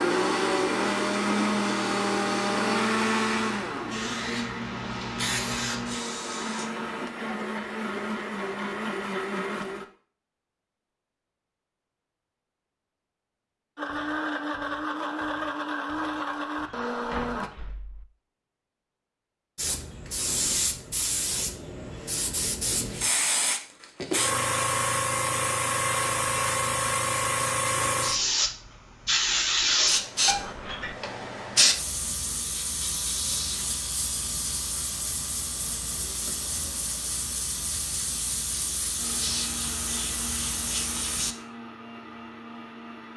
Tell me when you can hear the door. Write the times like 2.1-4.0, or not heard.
16.2-18.1, 30.2-30.9.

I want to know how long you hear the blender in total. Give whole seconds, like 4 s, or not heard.
18 s.